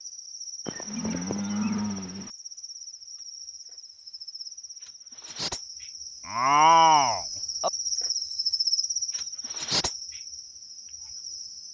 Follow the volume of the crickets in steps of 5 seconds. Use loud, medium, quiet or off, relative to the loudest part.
medium, loud, medium.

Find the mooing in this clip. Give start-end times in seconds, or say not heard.
0.7-2.3, 6.2-7.7.